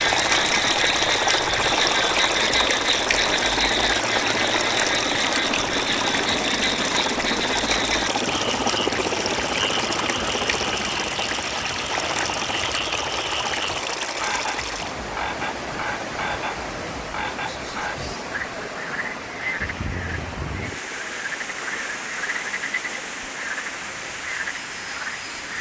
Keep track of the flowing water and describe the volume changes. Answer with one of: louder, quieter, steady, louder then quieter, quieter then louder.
quieter.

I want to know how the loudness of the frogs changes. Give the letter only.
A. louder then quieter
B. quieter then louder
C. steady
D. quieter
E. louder
D.